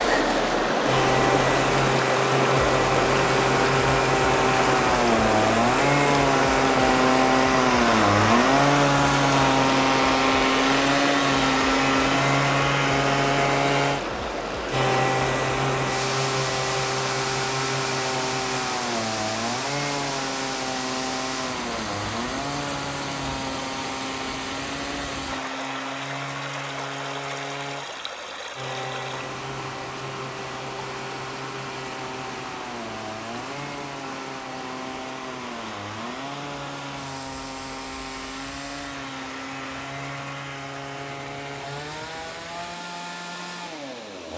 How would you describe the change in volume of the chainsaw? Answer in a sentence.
The volume of the chainsaw goes down.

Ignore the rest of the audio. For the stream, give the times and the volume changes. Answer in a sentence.
You can hear the stream from 0.0 to 44.3 s, getting quieter.